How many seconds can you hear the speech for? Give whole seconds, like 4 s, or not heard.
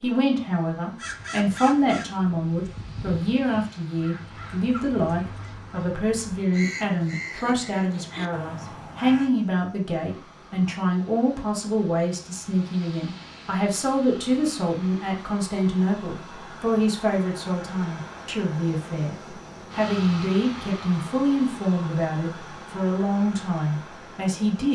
24 s.